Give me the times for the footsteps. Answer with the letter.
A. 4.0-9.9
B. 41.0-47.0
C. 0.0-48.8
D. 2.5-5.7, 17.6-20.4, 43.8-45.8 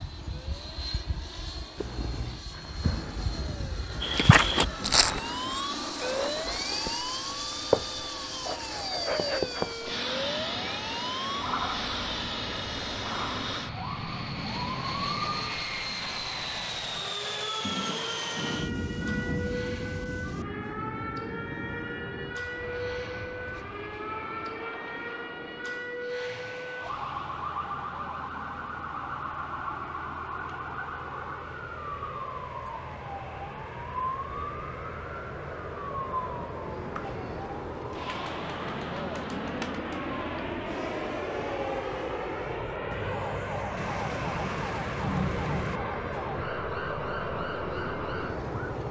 A.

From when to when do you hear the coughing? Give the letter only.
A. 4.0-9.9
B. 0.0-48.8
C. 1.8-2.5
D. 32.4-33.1
C.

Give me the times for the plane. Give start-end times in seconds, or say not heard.
0.0-48.8.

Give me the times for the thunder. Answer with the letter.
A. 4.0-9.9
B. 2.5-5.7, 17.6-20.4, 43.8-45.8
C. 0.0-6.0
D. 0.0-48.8
B.